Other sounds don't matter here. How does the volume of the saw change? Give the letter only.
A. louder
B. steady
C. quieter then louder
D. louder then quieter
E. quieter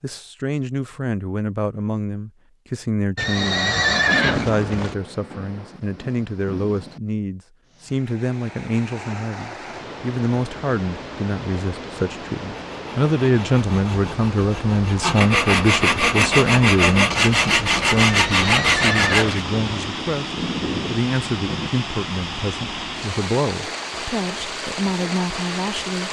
A.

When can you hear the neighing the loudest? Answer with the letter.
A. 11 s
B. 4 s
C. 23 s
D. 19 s
B.